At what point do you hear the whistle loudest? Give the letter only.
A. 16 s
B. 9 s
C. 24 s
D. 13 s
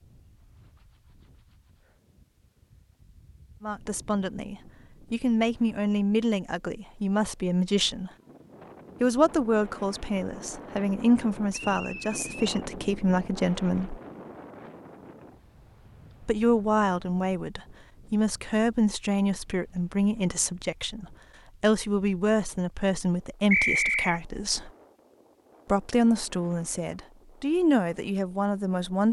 C.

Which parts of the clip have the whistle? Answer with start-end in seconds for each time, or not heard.
11.5-12.7, 23.5-24.1.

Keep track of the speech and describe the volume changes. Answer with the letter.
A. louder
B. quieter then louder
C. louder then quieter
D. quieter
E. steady
E.